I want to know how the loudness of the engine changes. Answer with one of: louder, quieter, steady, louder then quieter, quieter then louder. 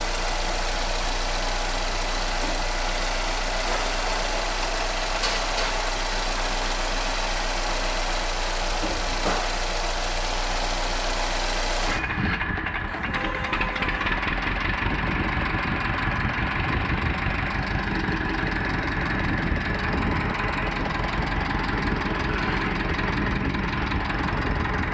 steady.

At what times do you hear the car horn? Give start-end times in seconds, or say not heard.
12.8-14.2.